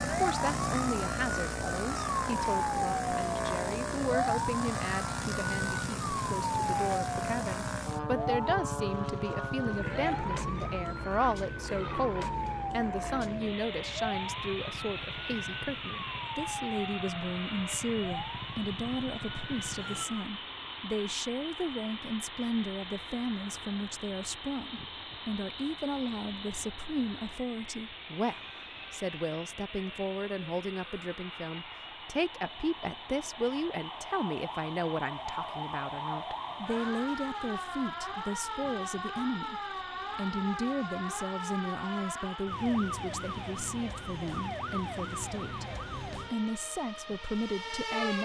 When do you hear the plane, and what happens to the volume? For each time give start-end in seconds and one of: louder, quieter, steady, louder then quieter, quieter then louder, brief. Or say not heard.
0.0-48.1 quieter.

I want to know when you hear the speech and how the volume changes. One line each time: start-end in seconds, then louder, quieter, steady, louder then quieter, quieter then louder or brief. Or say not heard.
0.1-45.6 steady
46.3-48.2 brief.